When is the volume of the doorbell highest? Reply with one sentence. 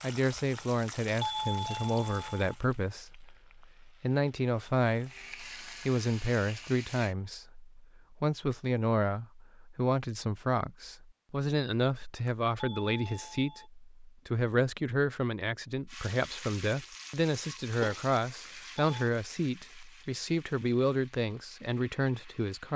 The volume of the doorbell peaks at 1 second.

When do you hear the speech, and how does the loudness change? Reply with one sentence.
You can hear the speech from 0.0 to 22.7 s, at a steady volume.